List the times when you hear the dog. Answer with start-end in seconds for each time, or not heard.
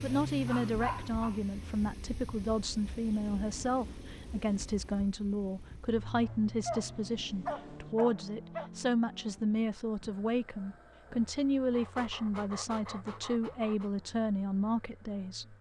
0.5-1.4, 6.2-8.7, 11.7-13.9.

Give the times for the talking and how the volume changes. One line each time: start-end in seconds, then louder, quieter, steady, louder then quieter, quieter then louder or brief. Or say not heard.
0.0-15.5 steady.